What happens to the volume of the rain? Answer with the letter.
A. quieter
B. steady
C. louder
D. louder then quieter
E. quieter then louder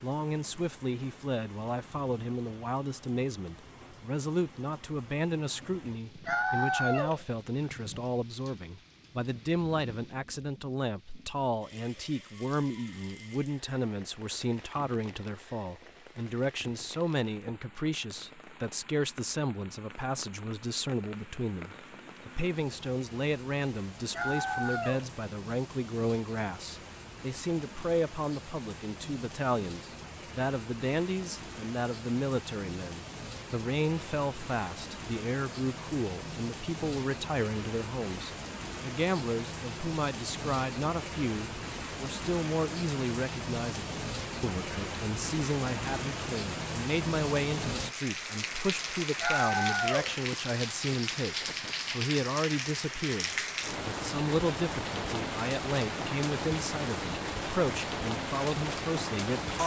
C.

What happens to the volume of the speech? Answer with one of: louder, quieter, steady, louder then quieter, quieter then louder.
steady.